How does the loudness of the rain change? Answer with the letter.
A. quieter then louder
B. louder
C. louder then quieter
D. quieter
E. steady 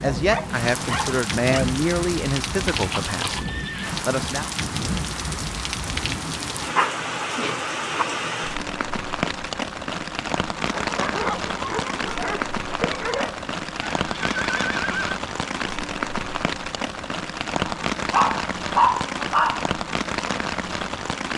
E.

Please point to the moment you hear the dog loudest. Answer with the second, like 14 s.
19 s.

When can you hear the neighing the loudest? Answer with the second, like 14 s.
15 s.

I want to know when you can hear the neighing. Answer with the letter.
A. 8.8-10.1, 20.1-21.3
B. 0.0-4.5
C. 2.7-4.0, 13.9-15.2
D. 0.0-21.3
C.